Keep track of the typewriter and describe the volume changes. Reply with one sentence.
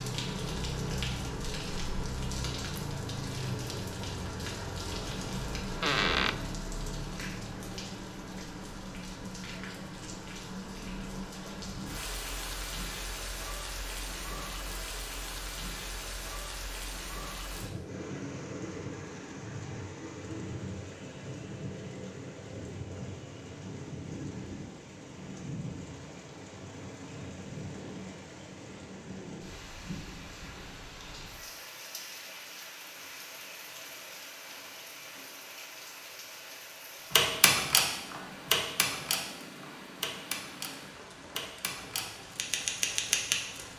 The volume of the typewriter goes down, then up.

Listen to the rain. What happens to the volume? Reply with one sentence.
The loudness of the rain goes down.